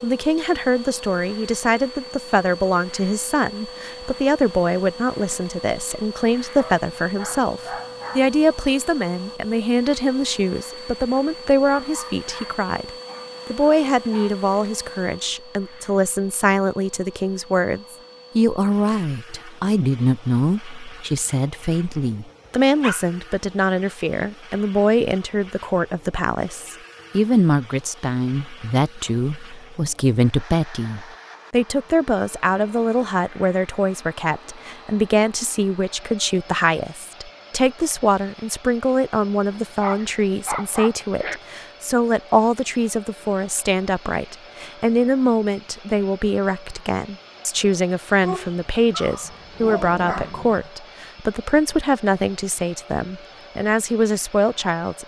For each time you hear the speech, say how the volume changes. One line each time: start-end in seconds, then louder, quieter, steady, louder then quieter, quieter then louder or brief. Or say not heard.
0.0-12.9 steady
13.5-55.0 steady.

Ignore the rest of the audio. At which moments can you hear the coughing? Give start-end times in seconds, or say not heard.
not heard.